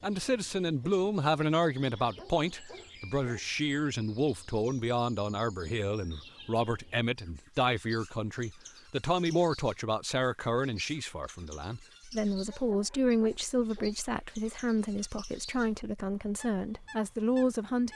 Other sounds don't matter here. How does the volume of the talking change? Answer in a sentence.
The loudness of the talking stays about the same.